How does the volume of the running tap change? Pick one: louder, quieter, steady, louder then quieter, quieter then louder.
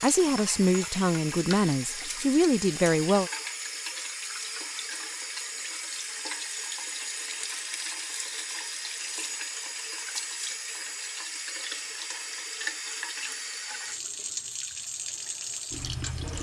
steady.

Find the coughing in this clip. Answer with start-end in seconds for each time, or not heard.
not heard.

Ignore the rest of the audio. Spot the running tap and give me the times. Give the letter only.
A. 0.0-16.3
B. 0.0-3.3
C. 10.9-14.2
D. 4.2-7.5
A.